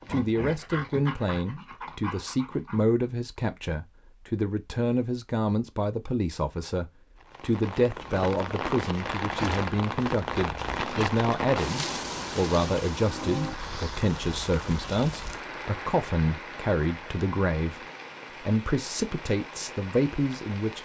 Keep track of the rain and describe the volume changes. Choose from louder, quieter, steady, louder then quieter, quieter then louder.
quieter.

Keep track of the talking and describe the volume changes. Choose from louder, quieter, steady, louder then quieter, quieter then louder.
steady.